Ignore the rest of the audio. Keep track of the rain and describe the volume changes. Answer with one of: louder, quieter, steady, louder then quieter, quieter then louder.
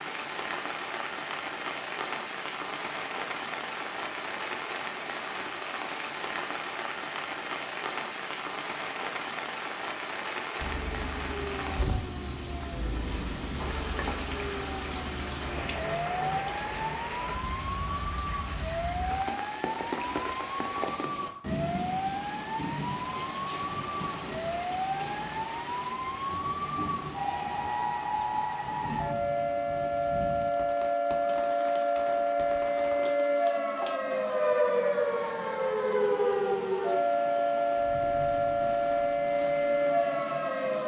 quieter.